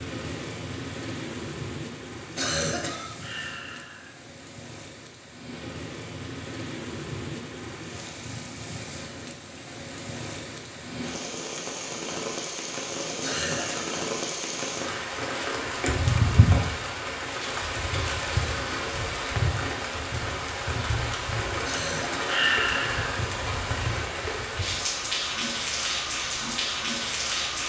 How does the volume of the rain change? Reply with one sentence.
The loudness of the rain goes up.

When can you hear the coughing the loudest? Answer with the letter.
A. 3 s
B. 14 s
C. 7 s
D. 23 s
A.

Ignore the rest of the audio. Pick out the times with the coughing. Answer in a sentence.
The coughing can be heard from 2.4 to 3.1 s, from 13.2 to 13.9 s and from 21.6 to 22.2 s.